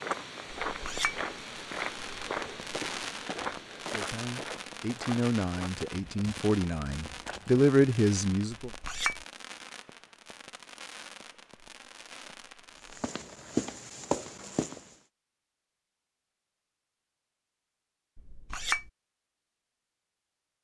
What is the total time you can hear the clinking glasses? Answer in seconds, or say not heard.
2 s.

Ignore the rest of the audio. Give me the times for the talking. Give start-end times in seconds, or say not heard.
3.9-8.7.